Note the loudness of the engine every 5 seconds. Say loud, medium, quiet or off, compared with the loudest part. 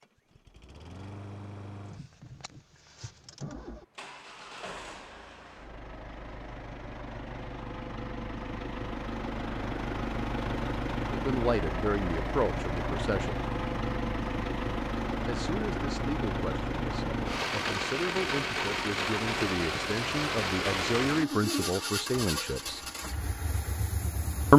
quiet, medium, loud, loud, loud.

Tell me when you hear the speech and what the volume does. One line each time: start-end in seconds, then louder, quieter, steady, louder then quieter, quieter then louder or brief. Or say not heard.
11.1-13.4 brief
15.2-22.8 louder.